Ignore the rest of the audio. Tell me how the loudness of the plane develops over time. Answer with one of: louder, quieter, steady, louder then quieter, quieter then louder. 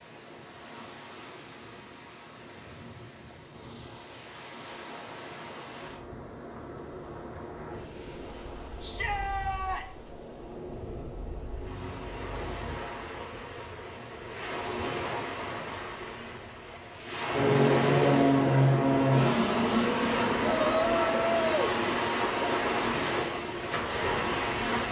quieter.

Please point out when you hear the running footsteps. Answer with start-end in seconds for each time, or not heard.
not heard.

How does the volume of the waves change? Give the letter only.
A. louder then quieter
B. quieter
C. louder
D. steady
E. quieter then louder
C.